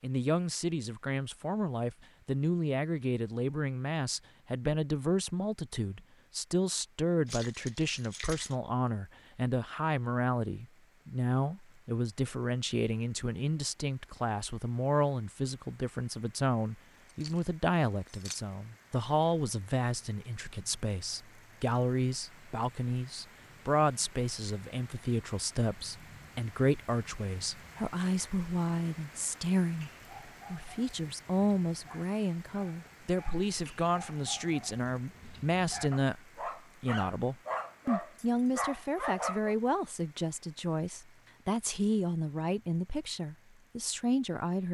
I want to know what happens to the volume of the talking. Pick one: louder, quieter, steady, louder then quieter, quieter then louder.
steady.